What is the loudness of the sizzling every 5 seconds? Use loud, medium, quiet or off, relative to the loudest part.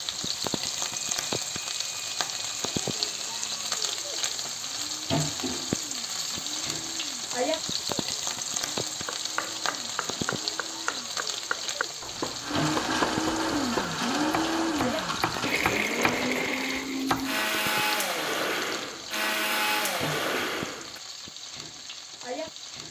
loud, loud, loud, medium, medium.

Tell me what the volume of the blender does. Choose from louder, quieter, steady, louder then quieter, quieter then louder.
louder.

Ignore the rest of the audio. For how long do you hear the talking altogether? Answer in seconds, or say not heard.
not heard.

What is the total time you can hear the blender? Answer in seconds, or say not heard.
21 s.